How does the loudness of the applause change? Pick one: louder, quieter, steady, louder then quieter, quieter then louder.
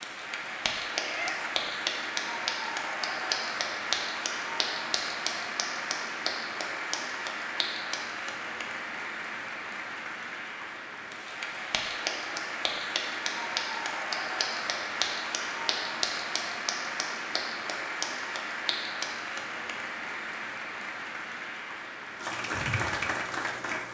steady.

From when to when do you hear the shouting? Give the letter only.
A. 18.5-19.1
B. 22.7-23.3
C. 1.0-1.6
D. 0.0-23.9
C.